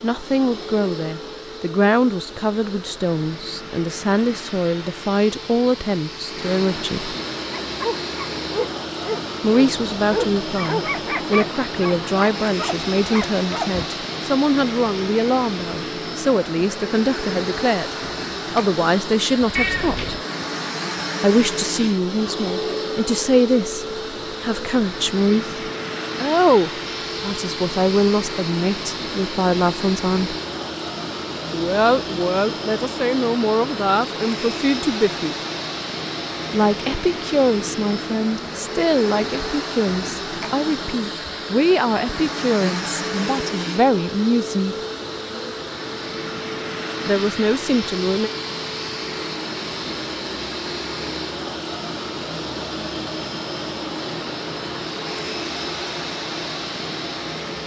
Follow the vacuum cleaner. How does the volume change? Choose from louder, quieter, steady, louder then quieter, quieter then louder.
steady.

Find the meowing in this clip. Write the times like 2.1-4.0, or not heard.
19.6-20.2.